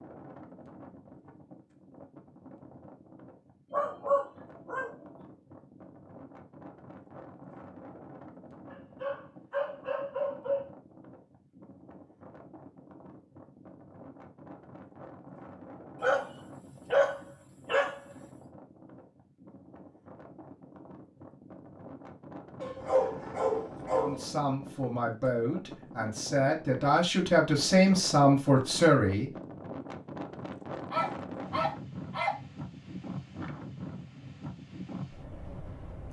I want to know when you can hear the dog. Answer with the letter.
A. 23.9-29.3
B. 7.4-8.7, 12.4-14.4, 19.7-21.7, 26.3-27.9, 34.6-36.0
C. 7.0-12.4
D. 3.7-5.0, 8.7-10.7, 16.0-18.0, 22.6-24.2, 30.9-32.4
D.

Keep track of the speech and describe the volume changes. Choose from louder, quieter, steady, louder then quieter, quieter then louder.
louder.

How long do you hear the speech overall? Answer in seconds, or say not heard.
5 s.